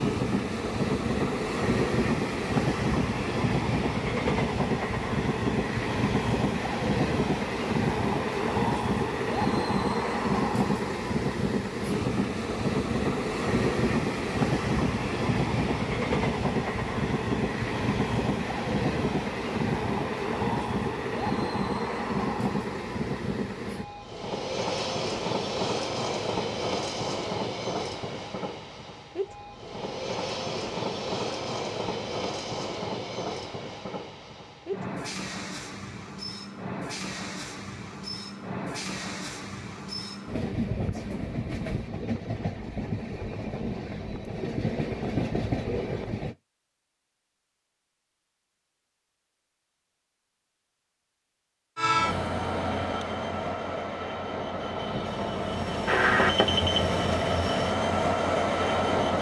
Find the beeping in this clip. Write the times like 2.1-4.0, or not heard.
55.9-56.8.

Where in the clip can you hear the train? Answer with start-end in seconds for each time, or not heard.
0.0-46.4, 51.8-59.1.